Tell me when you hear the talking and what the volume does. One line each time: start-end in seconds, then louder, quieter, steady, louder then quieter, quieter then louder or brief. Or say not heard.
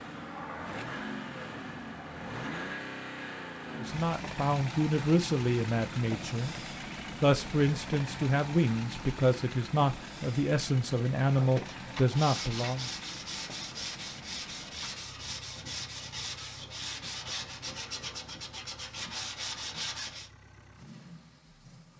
3.8-12.9 steady.